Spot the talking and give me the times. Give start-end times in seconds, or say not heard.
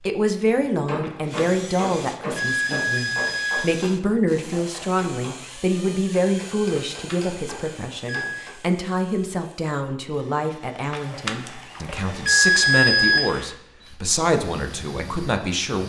0.0-15.8.